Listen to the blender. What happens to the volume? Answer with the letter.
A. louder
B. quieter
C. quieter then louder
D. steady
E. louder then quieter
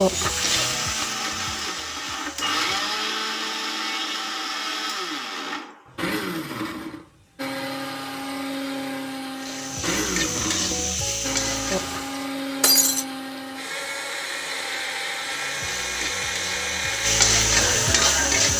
D.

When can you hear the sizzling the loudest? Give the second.
18 s.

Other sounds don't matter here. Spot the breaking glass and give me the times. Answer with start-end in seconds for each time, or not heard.
12.6-13.1.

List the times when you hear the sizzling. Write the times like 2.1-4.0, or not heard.
0.0-2.9, 9.3-12.3, 15.2-18.5.